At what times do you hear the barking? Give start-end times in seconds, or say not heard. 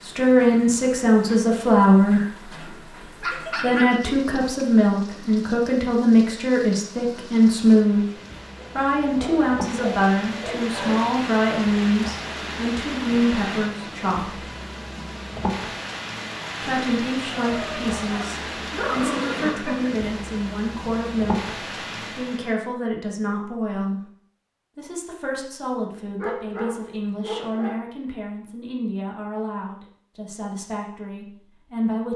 2.6-4.0, 8.6-11.1, 17.2-19.9, 26.1-27.8.